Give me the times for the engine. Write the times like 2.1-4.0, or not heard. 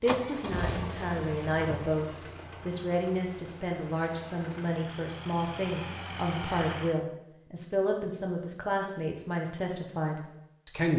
0.0-7.0.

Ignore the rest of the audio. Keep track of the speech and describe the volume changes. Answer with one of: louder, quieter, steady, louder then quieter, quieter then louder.
steady.